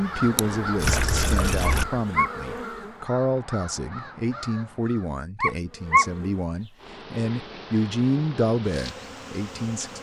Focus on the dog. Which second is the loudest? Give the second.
6 s.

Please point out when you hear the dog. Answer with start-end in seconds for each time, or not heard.
1.6-2.3, 5.4-6.0.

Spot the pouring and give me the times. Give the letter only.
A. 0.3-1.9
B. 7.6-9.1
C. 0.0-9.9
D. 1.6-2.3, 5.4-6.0
A.